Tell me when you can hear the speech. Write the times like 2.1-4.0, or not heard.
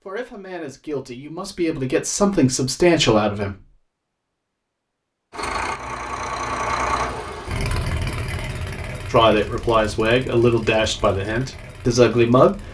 0.1-3.7, 9.1-12.7.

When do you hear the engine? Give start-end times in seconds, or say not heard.
5.3-12.7.